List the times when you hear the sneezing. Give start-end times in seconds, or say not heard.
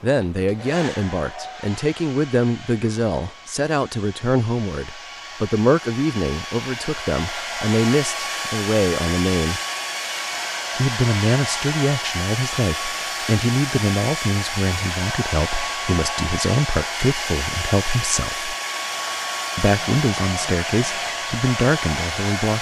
not heard.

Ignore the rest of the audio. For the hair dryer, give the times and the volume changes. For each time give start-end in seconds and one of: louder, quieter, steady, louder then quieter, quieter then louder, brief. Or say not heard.
0.0-22.5 louder.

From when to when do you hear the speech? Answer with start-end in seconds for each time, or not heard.
0.0-9.6, 10.8-18.6, 19.6-22.5.